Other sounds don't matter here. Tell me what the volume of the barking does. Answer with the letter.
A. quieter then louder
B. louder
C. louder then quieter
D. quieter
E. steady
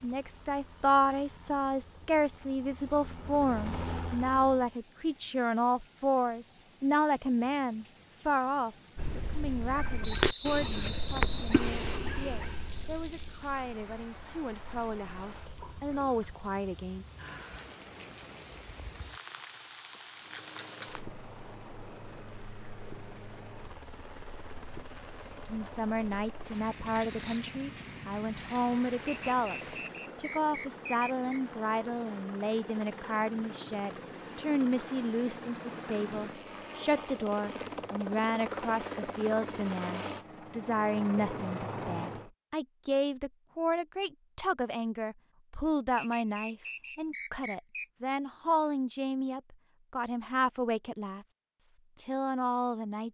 D.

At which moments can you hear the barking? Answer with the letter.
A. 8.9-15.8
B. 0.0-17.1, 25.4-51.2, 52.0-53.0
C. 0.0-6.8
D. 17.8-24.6
A.